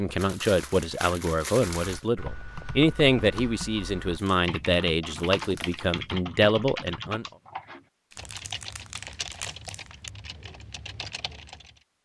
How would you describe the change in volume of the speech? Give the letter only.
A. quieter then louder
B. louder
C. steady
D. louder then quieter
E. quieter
C.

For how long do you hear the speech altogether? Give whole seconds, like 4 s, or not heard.
7 s.